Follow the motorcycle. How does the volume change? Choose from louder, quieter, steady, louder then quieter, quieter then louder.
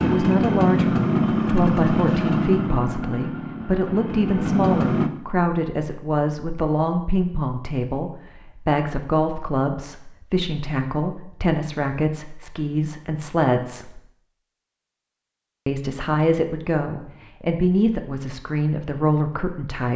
quieter then louder.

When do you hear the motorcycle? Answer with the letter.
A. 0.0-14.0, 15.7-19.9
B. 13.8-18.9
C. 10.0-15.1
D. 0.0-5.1
D.